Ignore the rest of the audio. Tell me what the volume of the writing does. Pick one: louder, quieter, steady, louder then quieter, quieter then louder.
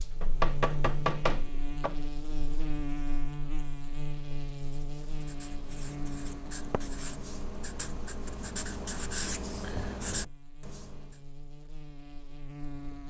louder.